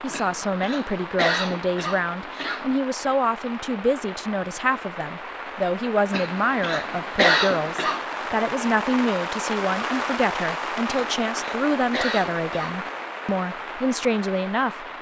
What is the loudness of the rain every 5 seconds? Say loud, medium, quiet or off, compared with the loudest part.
medium, loud, loud.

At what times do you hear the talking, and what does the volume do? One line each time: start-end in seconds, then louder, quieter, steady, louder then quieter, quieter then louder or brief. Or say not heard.
0.0-14.8 steady.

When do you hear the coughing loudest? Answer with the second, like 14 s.
7 s.